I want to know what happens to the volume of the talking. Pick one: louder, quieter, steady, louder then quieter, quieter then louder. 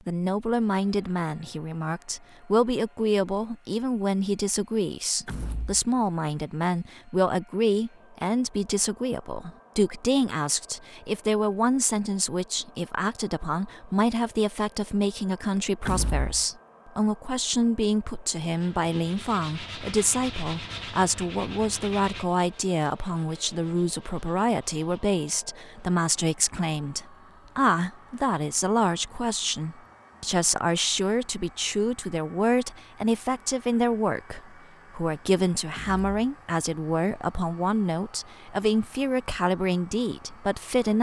steady.